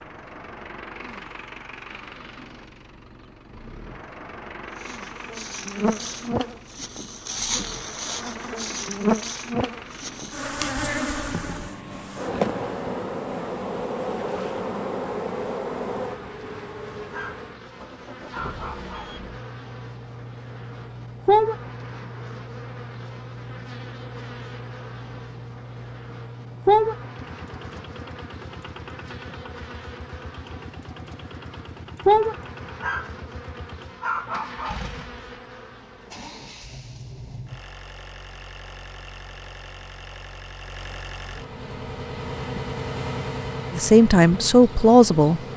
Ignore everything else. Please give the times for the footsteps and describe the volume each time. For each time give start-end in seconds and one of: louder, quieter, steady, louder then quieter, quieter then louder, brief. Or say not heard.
not heard.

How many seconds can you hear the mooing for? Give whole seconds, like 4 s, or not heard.
not heard.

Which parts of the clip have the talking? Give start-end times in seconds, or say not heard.
43.7-45.4.